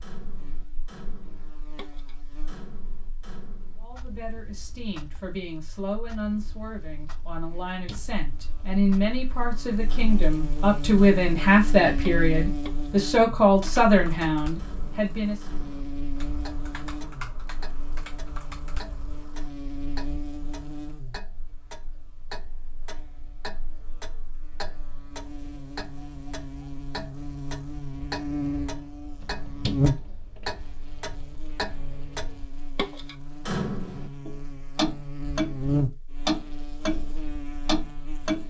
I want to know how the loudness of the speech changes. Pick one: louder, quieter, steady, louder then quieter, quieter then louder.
louder.